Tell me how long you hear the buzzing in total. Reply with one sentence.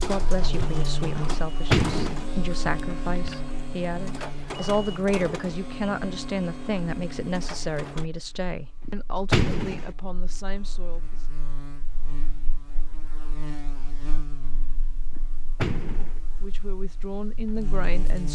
The buzzing can be heard for 18 seconds in total.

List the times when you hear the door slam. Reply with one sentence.
You can hear the door slam from 1.2 to 2.3 s, from 8.8 to 9.9 s and from 15.2 to 16.2 s.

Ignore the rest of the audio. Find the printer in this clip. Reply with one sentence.
You can hear the printer from 0.0 to 8.1 s.